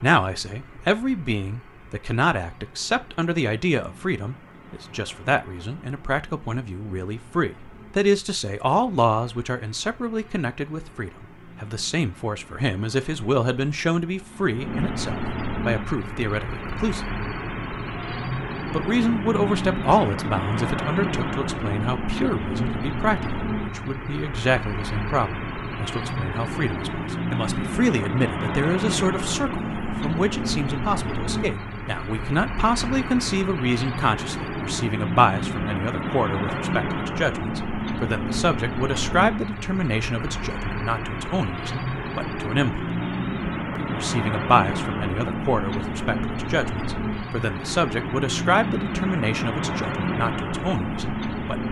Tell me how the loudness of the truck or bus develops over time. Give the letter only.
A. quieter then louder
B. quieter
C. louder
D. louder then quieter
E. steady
C.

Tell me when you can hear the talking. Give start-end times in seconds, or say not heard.
0.0-17.1, 18.7-42.9, 43.8-51.6.